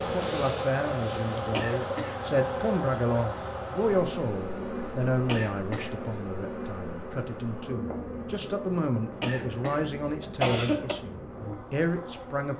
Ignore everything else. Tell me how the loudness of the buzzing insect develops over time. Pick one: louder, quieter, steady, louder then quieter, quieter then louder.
quieter.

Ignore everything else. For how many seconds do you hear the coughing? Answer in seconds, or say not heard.
3 s.